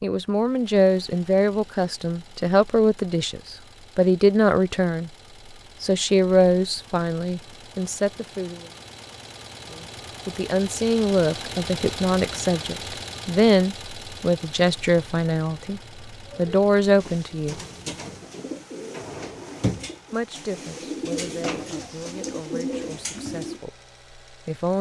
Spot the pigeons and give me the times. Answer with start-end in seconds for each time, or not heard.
16.2-23.6.